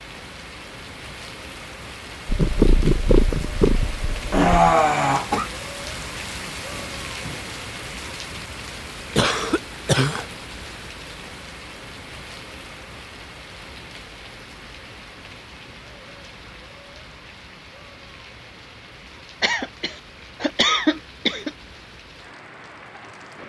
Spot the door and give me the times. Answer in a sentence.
You can hear the door from 6.7 to 7.5 s.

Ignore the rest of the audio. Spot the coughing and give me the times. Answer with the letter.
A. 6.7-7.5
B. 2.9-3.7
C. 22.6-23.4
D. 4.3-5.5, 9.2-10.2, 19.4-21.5
D.